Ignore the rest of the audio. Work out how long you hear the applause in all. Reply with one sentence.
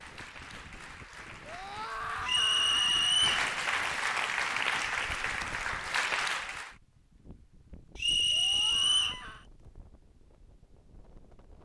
You can hear the applause for 7 seconds altogether.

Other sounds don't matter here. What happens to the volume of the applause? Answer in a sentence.
The volume of the applause goes up.